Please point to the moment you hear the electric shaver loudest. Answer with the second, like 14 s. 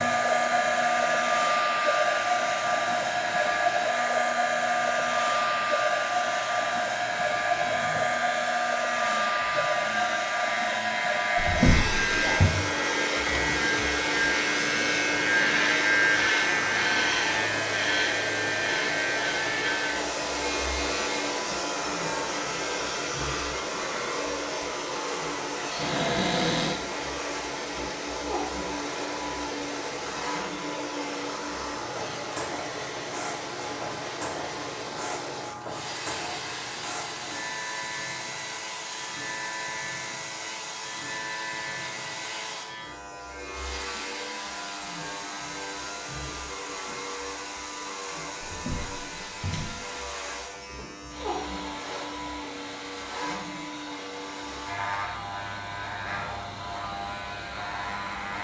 16 s.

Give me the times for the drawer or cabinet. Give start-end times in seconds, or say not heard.
11.3-12.5, 25.8-26.8, 48.4-49.8.